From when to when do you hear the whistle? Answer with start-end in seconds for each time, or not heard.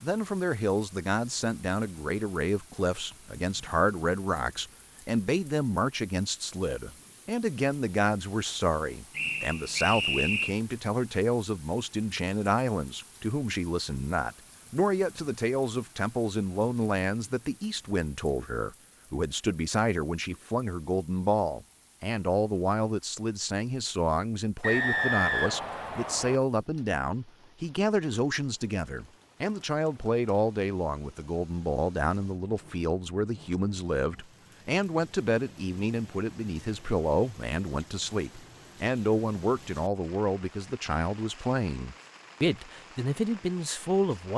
9.2-10.5, 24.6-26.4.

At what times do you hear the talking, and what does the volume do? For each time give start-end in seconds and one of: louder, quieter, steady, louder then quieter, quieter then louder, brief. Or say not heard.
0.0-44.3 steady.